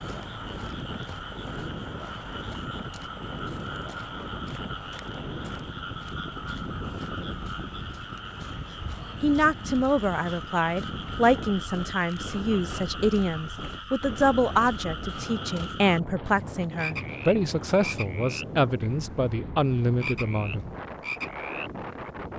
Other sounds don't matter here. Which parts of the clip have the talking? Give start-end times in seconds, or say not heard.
9.2-20.6.